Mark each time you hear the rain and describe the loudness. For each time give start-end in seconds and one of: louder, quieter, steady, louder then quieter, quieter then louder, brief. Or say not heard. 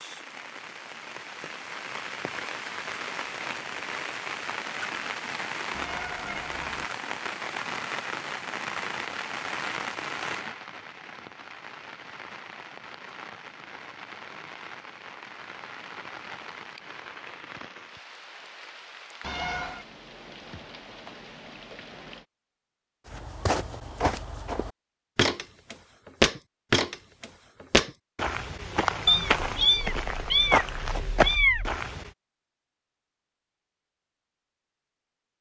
0.0-22.2 quieter.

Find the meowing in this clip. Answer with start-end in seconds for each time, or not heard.
5.7-6.8, 19.2-19.9, 29.1-31.8.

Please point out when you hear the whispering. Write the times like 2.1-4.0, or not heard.
not heard.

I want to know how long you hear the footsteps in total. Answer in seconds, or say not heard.
9 s.